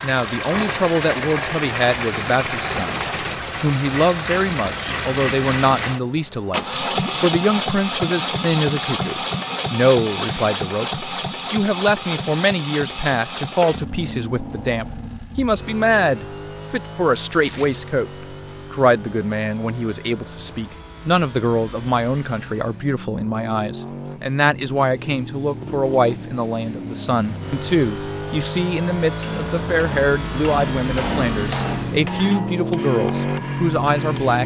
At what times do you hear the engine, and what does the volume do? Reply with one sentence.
The engine can be heard from 0.0 to 34.4 s, getting quieter then louder.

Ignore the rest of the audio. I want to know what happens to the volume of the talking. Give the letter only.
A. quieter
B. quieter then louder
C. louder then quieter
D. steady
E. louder
D.